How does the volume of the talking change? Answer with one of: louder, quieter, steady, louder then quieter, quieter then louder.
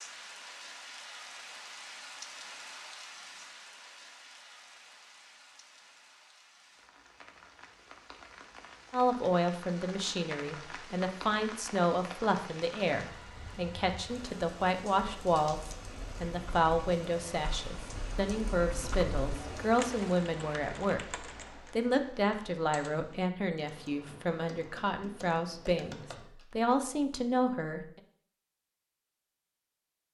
steady.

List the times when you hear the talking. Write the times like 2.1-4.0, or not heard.
8.9-28.0.